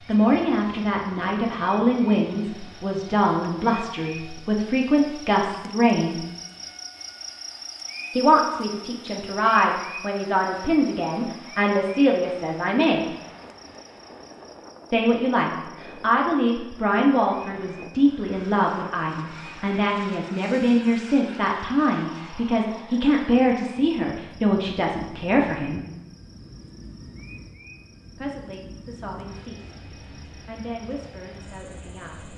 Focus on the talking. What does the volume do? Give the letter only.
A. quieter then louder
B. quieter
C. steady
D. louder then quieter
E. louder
B.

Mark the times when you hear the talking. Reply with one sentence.
The talking can be heard from 0.1 to 6.2 s, from 8.2 to 13.1 s, from 14.9 to 25.9 s and from 28.1 to 32.3 s.